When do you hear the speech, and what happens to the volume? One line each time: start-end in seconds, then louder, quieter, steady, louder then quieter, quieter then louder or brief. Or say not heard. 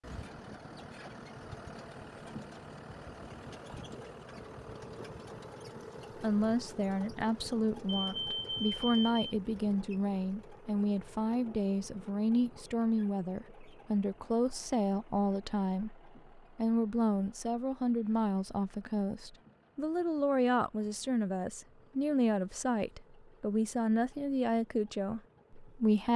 6.2-26.1 steady.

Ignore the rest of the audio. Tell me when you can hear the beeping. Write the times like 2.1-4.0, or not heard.
7.8-9.2.